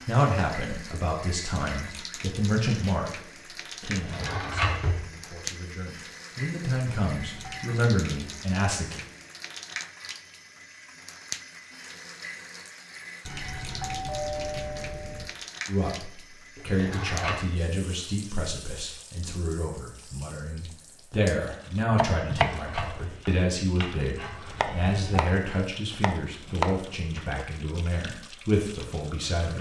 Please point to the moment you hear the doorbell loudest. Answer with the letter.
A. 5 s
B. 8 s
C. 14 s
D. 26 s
C.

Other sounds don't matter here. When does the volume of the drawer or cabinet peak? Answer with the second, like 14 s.
5 s.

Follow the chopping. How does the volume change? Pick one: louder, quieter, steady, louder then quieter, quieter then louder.
quieter then louder.